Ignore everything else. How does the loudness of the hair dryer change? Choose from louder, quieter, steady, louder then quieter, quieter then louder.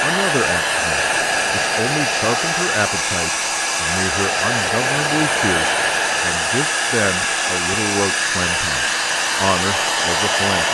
steady.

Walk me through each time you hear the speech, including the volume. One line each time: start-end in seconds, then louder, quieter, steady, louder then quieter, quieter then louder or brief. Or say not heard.
0.0-10.6 steady.